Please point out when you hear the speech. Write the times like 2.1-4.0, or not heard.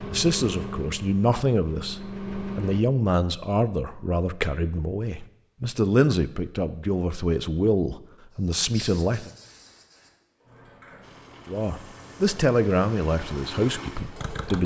0.0-9.3, 11.4-14.6.